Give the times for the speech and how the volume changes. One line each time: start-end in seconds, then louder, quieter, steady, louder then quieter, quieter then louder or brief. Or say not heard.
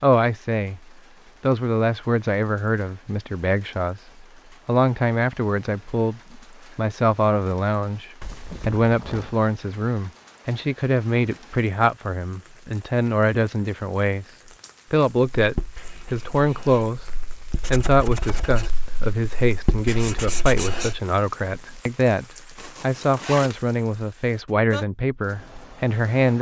0.0-0.8 brief
1.4-14.2 steady
14.9-26.3 steady.